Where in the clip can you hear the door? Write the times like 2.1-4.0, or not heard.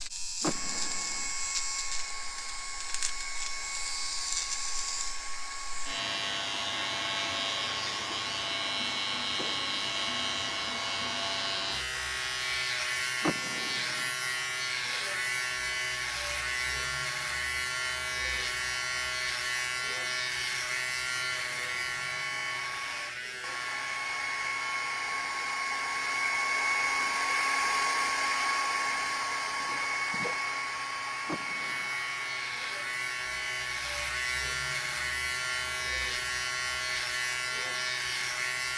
0.4-1.3, 13.2-14.1, 31.2-31.9.